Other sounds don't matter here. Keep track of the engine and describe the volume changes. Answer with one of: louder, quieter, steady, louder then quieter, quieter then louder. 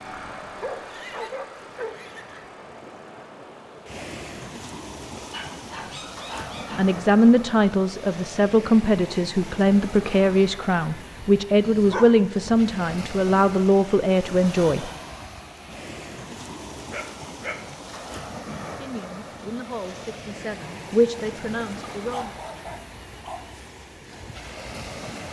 quieter.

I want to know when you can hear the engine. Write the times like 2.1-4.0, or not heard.
0.0-4.0.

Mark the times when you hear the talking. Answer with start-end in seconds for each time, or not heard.
6.8-14.9, 18.8-22.4.